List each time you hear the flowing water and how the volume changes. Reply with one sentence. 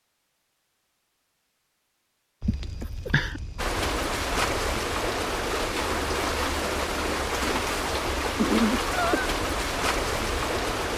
You can hear the flowing water from 3.5 to 10.9 s, at a steady volume.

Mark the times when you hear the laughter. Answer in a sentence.
The laughter can be heard from 2.5 to 3.4 s and from 8.3 to 9.3 s.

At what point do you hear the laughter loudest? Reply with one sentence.
The volume of the laughter peaks at 9 seconds.